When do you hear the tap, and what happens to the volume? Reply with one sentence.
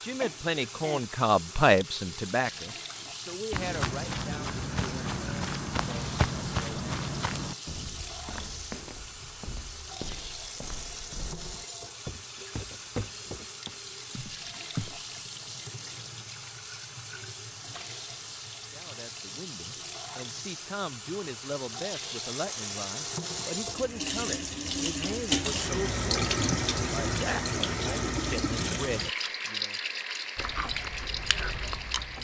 The tap can be heard from 0.0 to 32.1 s, getting louder.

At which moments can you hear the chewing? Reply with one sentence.
The chewing can be heard from 30.4 to 32.1 s.